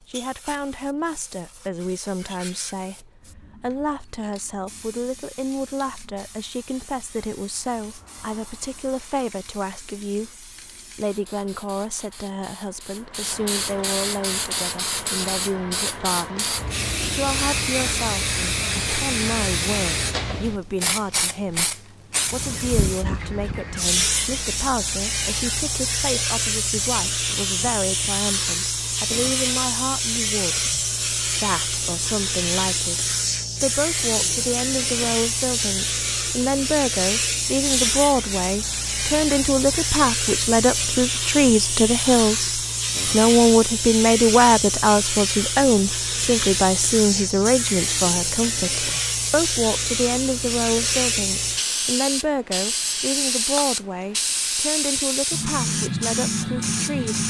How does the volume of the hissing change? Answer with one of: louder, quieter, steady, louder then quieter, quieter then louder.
louder.